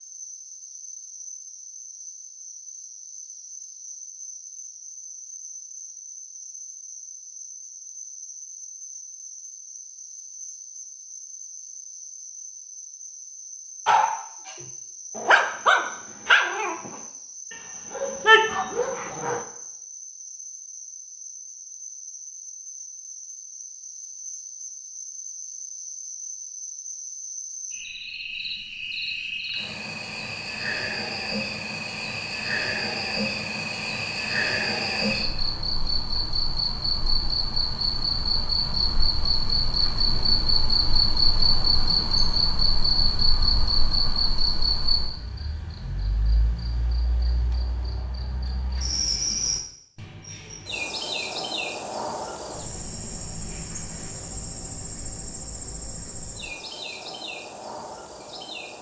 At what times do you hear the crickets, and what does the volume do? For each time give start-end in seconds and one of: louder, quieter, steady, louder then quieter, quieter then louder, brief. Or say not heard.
0.0-58.7 louder then quieter.